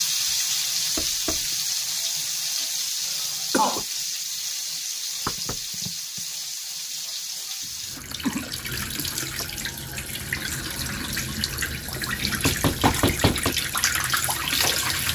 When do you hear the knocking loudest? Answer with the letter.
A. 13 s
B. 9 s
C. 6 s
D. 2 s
A.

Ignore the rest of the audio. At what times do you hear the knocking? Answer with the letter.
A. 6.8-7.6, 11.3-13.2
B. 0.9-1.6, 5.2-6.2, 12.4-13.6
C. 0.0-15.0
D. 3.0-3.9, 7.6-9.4
B.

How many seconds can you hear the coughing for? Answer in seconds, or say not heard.
3 s.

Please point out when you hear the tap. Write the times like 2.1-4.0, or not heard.
0.0-15.0.